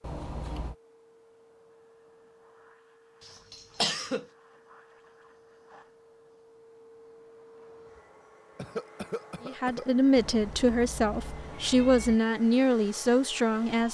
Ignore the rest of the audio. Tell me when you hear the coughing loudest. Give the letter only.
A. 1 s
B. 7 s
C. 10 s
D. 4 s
D.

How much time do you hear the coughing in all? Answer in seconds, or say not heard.
2 s.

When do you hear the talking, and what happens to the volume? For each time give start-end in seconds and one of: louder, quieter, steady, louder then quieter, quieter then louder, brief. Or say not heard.
9.4-13.8 steady.